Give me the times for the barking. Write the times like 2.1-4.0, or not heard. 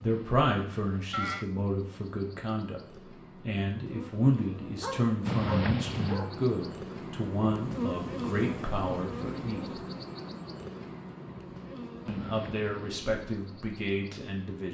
4.8-6.3.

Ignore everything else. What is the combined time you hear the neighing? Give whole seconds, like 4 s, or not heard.
3 s.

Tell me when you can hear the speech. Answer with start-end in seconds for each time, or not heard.
0.0-2.8, 3.5-9.8, 12.1-14.6.